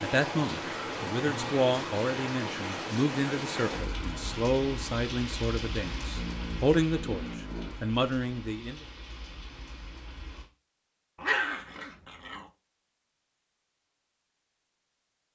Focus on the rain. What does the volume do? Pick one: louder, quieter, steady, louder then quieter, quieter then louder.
quieter.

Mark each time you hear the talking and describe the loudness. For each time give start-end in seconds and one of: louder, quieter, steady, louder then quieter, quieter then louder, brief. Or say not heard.
0.0-8.8 steady.